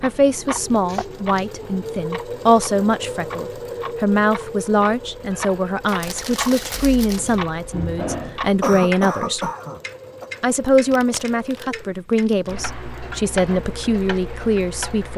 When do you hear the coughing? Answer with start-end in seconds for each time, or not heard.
8.6-10.3.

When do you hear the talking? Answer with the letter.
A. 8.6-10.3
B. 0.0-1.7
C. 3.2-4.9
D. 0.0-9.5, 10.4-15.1
D.